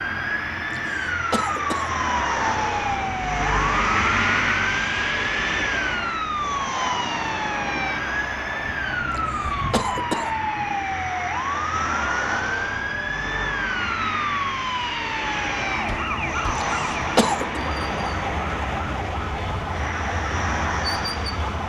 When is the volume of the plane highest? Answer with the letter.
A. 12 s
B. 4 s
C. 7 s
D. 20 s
B.